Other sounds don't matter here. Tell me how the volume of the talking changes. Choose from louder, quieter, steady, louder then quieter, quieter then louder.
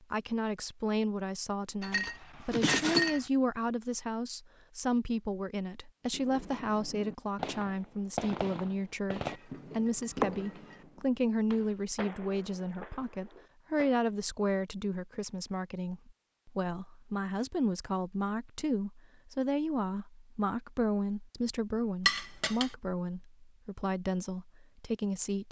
steady.